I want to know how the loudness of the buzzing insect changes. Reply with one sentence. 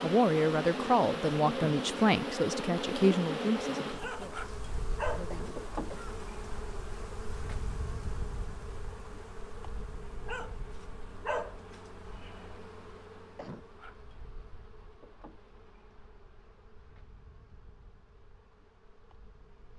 The loudness of the buzzing insect goes down.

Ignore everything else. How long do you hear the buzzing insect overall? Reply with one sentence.
You can hear the buzzing insect for 20 seconds altogether.